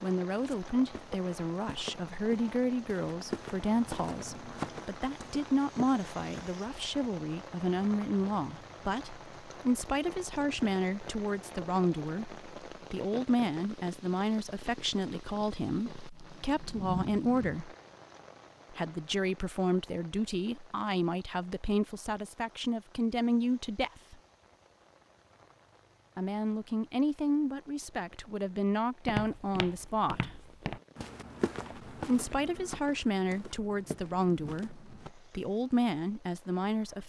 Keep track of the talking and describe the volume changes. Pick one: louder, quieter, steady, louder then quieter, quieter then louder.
steady.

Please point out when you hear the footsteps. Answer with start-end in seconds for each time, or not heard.
0.3-6.3, 29.1-35.1.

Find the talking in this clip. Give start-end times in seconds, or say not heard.
0.0-17.8, 18.7-24.1, 26.1-30.4, 31.9-37.0.